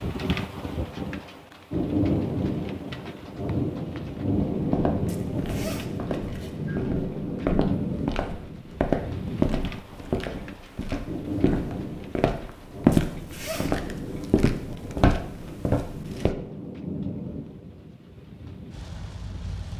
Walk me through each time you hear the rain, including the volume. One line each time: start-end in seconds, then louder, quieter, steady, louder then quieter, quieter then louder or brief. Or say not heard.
0.0-19.7 quieter.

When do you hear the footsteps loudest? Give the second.
13 s.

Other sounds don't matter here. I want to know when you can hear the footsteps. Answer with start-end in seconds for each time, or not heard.
4.5-16.4.